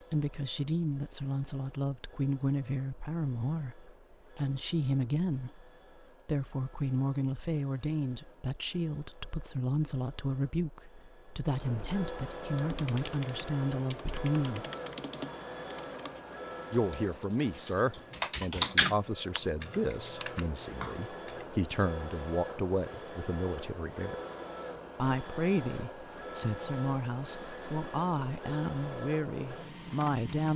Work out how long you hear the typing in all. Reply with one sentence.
You can hear the typing for 9 seconds altogether.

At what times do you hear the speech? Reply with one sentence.
You can hear the speech from 0.1 to 14.7 s, from 16.7 to 24.1 s and from 24.9 to 30.5 s.